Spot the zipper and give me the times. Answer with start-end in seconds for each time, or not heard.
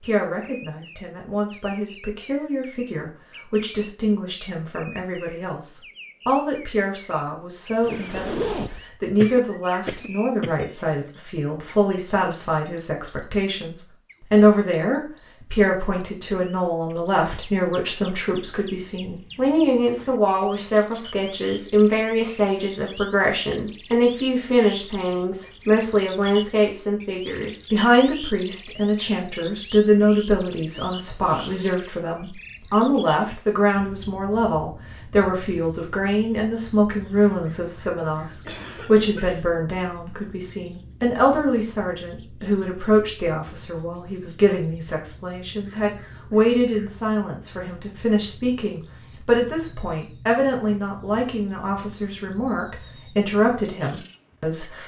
7.8-8.8, 30.9-31.8.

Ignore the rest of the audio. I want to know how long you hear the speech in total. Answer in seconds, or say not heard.
55 s.